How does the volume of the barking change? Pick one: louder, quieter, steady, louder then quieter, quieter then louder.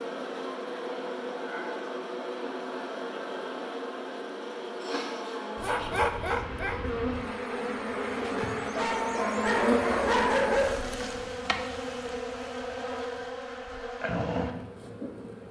quieter then louder.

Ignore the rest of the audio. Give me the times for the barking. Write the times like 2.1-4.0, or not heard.
5.5-11.0.